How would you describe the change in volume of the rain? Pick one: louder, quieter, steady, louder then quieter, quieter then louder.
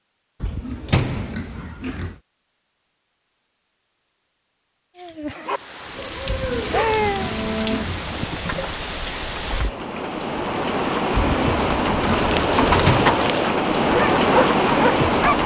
louder.